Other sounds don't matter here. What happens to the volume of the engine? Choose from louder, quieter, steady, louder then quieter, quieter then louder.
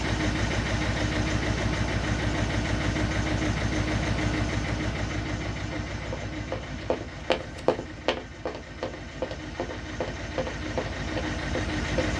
quieter then louder.